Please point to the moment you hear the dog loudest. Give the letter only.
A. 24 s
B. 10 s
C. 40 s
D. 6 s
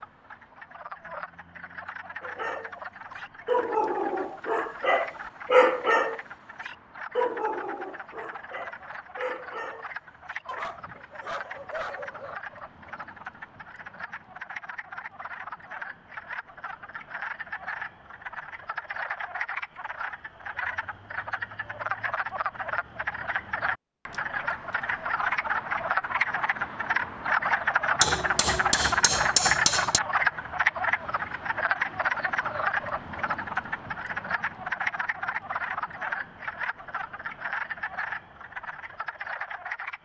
D.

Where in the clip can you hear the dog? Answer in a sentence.
The dog can be heard from 2.2 to 12.3 s.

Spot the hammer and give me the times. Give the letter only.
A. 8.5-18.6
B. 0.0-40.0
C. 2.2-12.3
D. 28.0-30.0
D.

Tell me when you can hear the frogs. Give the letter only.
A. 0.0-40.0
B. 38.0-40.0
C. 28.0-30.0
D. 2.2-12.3
A.